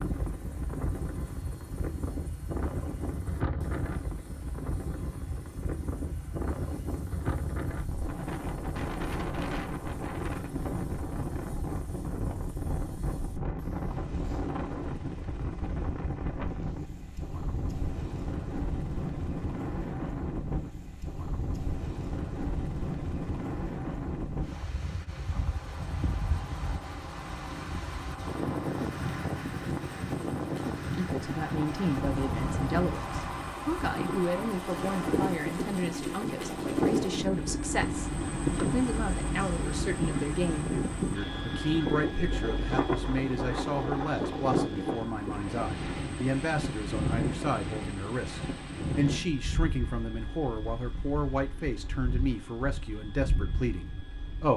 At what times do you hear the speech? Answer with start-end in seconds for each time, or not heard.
30.9-54.5.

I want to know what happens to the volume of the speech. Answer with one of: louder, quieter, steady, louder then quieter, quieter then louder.
steady.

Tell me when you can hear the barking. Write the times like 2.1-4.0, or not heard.
not heard.